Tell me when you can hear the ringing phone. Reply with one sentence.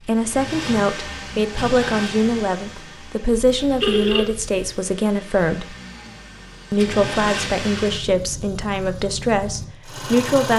You can hear the ringing phone from 3.3 to 4.9 s.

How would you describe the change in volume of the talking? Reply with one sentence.
The loudness of the talking stays about the same.